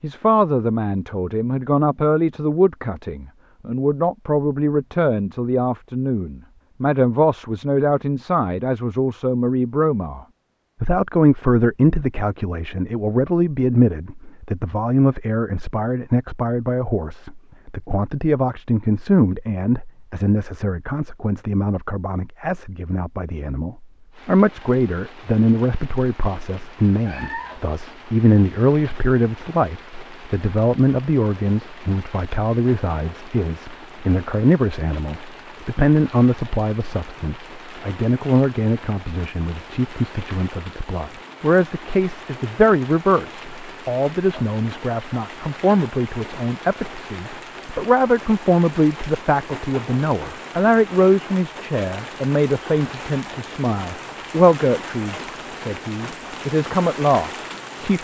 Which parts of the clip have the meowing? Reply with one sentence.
The meowing can be heard from 27.1 to 27.6 s.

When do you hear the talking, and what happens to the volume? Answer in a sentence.
You can hear the talking from 0.0 to 10.2 s, at a steady volume; and from 10.8 to 57.9 s, at a steady volume.